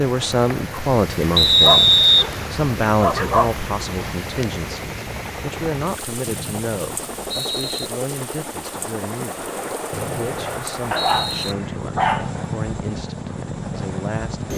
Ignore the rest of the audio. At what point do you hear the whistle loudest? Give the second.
2 s.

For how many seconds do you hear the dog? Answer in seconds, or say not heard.
4 s.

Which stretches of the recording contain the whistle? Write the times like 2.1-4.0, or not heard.
1.4-2.3, 6.2-7.9, 9.9-11.6.